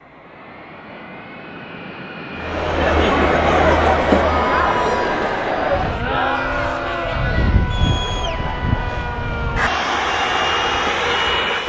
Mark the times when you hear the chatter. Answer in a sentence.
The chatter can be heard from 2.4 to 11.6 s.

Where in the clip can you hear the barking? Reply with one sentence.
You can't hear the barking here.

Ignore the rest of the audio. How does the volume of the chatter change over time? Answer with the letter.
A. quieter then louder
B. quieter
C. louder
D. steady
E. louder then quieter
B.